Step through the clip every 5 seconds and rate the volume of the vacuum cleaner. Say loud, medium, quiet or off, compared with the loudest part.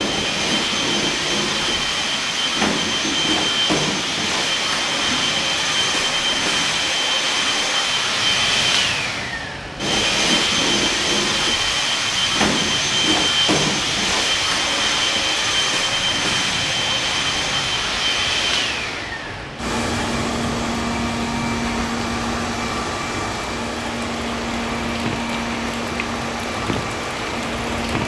loud, loud, loud, loud, medium, medium.